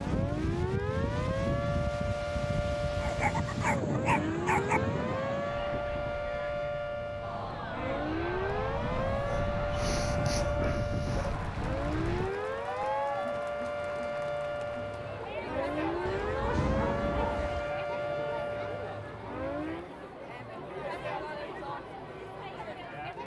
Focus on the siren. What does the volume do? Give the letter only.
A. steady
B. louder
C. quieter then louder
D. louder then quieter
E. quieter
A.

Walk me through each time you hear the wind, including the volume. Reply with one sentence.
The wind can be heard from 0.0 to 12.3 s, getting quieter then louder.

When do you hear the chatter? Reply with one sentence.
The chatter can be heard from 4.0 to 23.2 s.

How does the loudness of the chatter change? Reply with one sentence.
The volume of the chatter stays about the same.